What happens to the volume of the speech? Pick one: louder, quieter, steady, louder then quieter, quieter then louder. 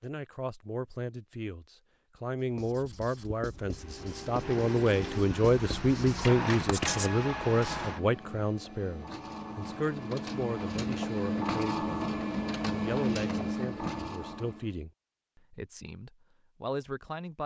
louder then quieter.